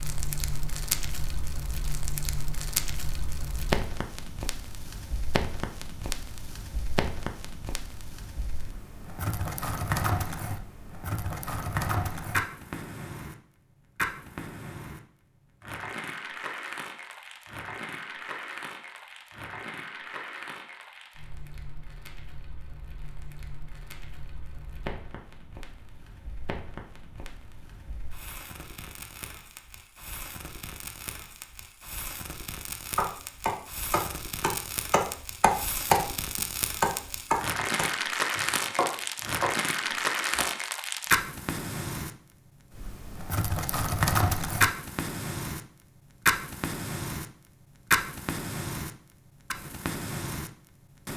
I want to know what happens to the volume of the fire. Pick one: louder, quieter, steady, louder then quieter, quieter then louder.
quieter then louder.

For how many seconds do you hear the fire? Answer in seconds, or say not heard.
51 s.